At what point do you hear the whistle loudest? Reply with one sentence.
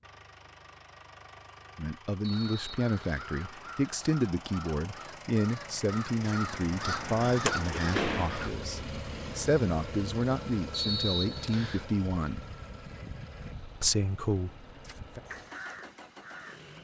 The volume of the whistle peaks at 11 seconds.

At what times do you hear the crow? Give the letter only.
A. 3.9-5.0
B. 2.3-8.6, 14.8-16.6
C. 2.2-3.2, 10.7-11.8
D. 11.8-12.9
B.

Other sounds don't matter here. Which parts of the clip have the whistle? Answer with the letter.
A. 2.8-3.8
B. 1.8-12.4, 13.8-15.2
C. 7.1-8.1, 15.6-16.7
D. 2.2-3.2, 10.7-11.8
D.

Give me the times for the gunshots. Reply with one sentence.
The gunshots can be heard from 7.5 to 8.5 s.